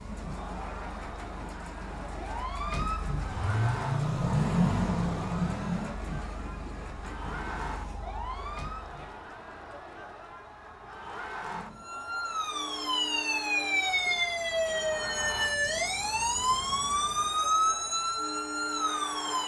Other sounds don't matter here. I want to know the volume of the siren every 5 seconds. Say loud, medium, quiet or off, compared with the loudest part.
loud, medium, loud, loud.